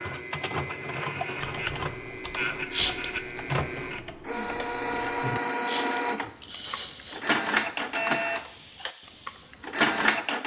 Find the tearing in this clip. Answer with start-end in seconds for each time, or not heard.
2.7-3.2, 5.6-7.2.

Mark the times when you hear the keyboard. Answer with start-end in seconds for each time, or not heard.
1.4-9.8.